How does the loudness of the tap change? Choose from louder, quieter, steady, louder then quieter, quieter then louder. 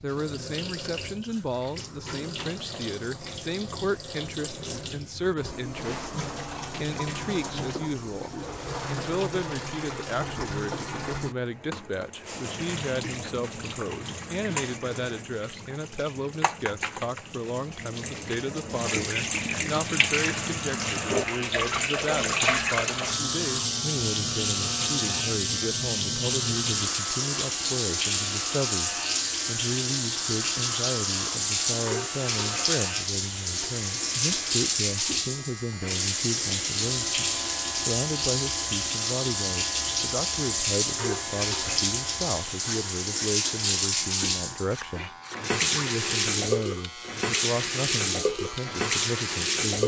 louder.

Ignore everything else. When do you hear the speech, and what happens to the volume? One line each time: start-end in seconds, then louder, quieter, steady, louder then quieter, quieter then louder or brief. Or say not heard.
0.0-49.8 steady.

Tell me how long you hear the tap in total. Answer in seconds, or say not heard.
50 s.